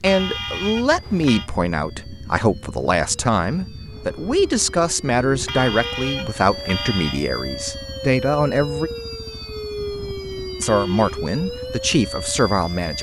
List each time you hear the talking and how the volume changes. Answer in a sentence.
The talking can be heard from 0.0 to 8.9 s, at a steady volume; and briefly from 10.6 to 12.9 s.